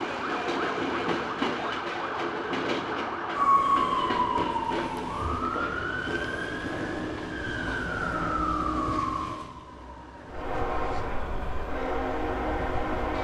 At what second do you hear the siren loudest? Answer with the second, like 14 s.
4 s.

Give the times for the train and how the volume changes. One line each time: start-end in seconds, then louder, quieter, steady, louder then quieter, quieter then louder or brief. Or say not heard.
0.0-8.5 quieter
10.2-13.1 brief.